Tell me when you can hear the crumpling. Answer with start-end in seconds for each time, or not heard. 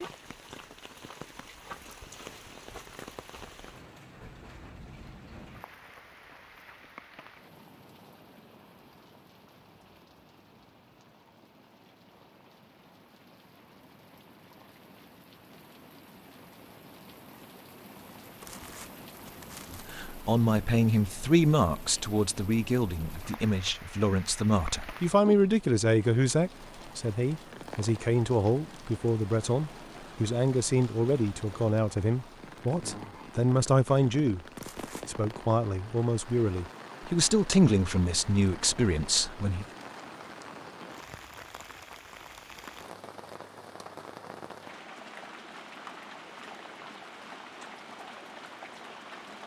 18.4-20.0, 34.5-35.2.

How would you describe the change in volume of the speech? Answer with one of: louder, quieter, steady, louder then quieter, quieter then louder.
steady.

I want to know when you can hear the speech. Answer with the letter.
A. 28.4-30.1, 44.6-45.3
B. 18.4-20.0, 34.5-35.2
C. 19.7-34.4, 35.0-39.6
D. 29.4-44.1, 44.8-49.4
C.